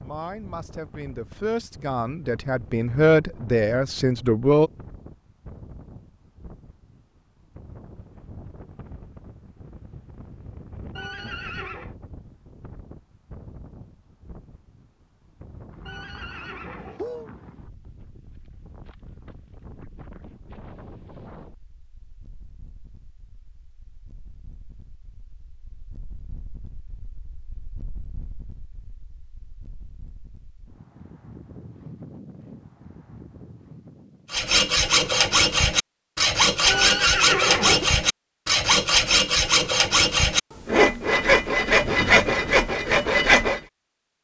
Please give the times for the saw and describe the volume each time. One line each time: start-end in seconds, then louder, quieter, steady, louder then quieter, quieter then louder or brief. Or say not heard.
34.3-43.6 steady.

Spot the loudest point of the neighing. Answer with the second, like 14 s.
37 s.